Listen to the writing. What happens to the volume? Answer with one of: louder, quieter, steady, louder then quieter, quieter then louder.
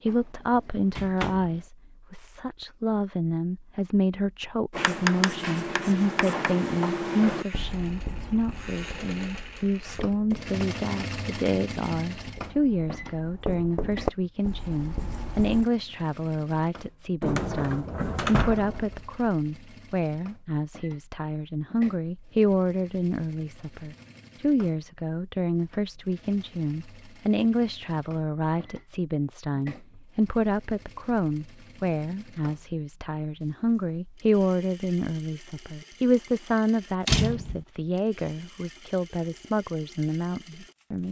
quieter then louder.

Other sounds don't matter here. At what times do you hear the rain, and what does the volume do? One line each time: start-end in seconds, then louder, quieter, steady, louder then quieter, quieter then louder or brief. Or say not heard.
not heard.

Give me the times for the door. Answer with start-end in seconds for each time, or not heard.
0.1-1.6, 17.2-19.1, 37.0-37.6.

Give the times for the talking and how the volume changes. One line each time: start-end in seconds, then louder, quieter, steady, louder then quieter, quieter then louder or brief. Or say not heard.
0.0-41.0 steady.